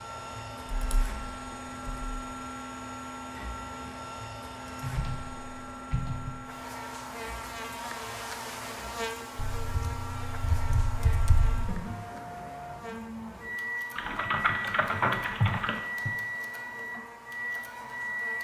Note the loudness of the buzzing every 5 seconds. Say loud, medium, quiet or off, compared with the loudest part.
off, loud, medium, medium.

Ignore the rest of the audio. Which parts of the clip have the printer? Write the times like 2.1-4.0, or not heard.
0.0-18.3.